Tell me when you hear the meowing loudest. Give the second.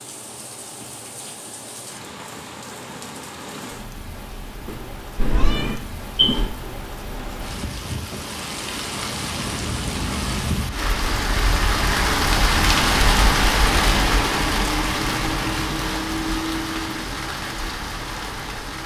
6 s.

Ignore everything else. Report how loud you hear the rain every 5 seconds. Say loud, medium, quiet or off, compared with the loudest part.
quiet, medium, loud, medium.